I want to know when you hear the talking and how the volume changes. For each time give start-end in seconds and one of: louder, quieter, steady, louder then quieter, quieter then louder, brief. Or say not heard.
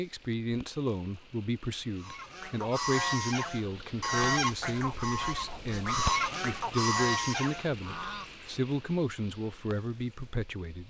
0.0-10.8 steady.